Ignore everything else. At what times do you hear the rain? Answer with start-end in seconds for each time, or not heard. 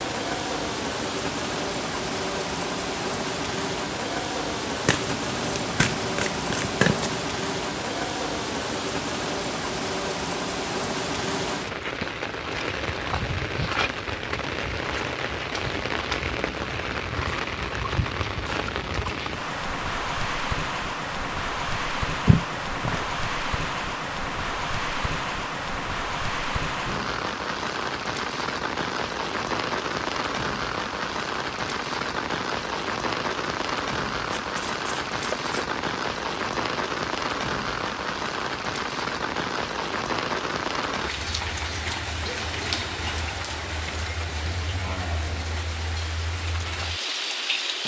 0.0-47.8.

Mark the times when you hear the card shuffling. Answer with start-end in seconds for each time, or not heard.
4.8-7.2, 22.2-23.1, 34.2-35.8.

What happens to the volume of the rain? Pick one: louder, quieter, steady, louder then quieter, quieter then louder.
steady.